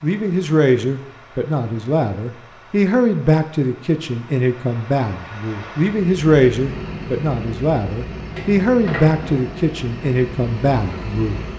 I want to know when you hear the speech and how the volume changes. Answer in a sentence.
The speech can be heard from 0.0 to 11.4 s, at a steady volume.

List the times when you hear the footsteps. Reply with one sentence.
You can't hear the footsteps here.